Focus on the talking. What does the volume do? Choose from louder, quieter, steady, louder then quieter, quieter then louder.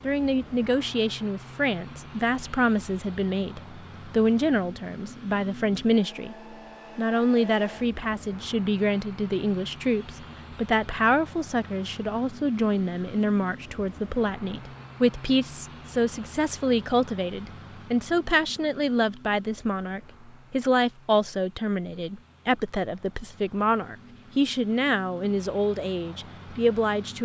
steady.